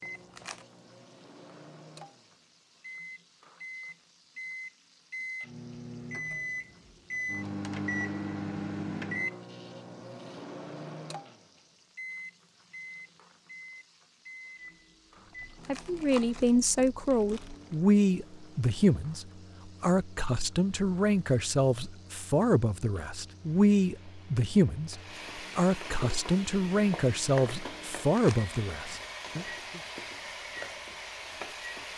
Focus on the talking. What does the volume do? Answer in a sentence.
The loudness of the talking stays about the same.